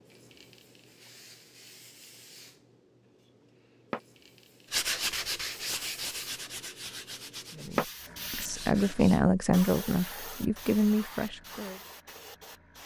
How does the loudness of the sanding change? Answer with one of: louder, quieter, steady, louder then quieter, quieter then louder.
quieter.